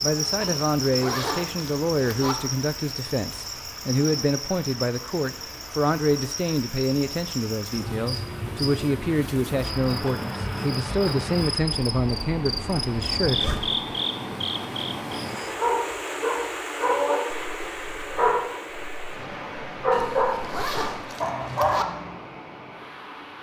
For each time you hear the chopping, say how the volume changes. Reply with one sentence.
The chopping can't be heard in this clip.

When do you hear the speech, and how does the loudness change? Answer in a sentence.
The speech can be heard from 0.0 to 13.4 s, at a steady volume.